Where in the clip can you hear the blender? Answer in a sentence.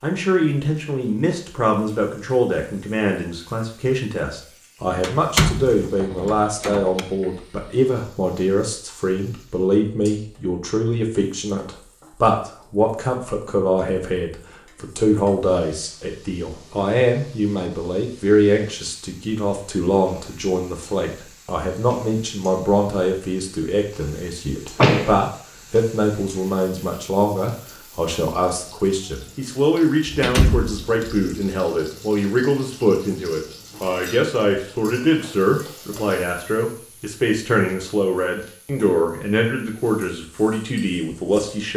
The blender can't be heard in this clip.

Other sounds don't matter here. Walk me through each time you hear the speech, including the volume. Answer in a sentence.
You can hear the speech from 0.0 to 41.7 s, at a steady volume.